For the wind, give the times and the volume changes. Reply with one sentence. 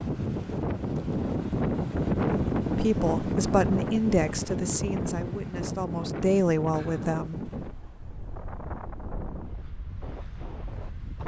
The wind can be heard from 0.0 to 11.2 s, getting quieter.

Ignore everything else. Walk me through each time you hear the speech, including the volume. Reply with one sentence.
The speech can be heard from 2.8 to 7.5 s, getting quieter then louder.